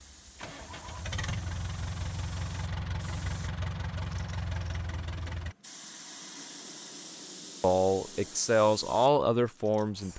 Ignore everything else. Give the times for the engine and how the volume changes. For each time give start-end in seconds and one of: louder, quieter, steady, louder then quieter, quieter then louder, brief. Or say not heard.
0.0-5.5 steady.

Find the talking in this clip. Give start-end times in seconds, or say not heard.
7.6-10.1.